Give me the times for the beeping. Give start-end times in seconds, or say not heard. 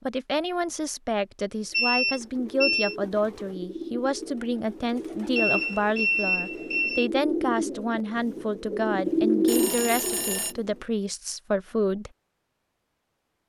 1.7-3.0, 5.3-7.1, 9.4-10.6.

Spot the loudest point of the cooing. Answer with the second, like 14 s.
9 s.